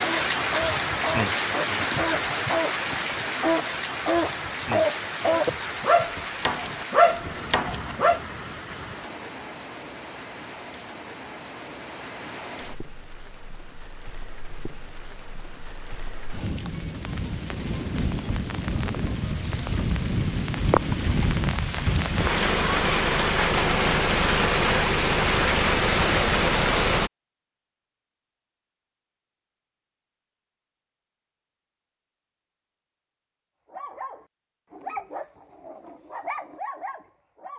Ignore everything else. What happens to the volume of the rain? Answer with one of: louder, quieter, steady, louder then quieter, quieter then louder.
quieter then louder.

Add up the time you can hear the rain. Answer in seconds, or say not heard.
27 s.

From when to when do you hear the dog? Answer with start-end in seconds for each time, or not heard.
0.0-8.2, 33.7-37.5.